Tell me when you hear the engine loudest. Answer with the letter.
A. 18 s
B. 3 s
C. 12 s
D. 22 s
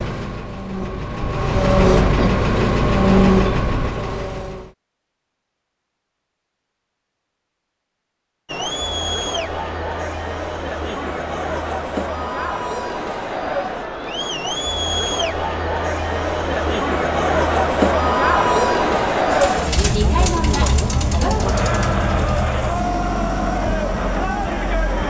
B.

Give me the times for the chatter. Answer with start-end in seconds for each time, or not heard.
8.4-25.0.